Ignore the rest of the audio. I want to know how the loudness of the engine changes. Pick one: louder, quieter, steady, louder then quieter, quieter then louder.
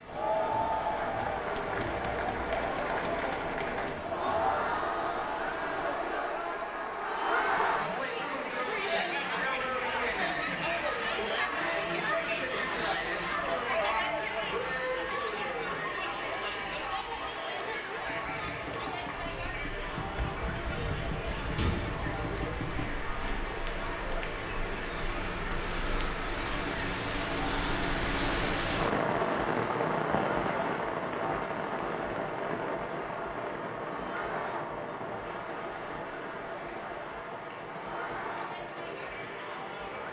louder.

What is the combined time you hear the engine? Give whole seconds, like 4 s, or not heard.
5 s.